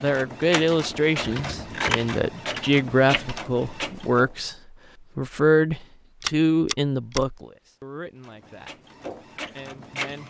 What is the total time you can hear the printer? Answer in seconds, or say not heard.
6 s.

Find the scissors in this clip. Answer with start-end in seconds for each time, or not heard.
1.2-2.2, 6.2-7.2.